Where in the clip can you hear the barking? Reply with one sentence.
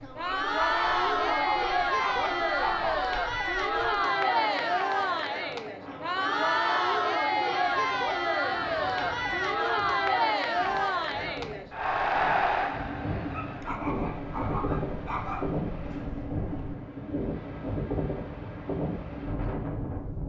You can hear the barking from 0.2 to 3.0 s and from 13.3 to 15.6 s.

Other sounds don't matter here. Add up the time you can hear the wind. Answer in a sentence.
The wind can be heard for 20 seconds in total.